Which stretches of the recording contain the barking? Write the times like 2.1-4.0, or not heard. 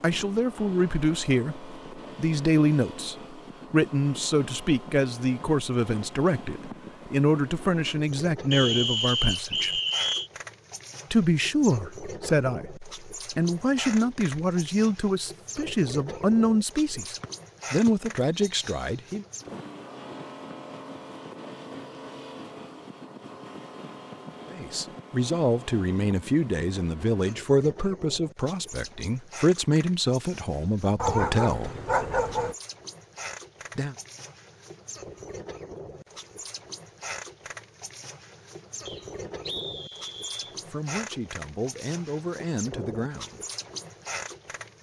30.9-32.5.